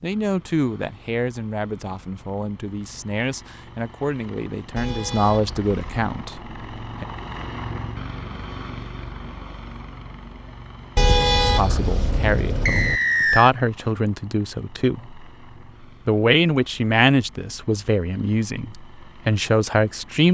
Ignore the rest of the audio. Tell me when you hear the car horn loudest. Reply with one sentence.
The volume of the car horn peaks at 11 seconds.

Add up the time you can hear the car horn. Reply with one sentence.
You can hear the car horn for 3 seconds altogether.